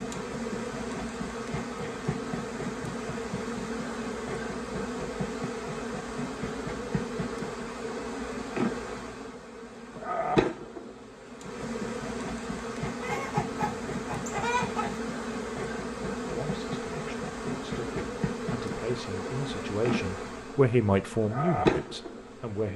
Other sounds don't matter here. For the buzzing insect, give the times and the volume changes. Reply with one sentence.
You can hear the buzzing insect from 0.0 to 22.7 s, at a steady volume.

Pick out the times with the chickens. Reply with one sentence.
You can hear the chickens from 13.0 to 15.0 s.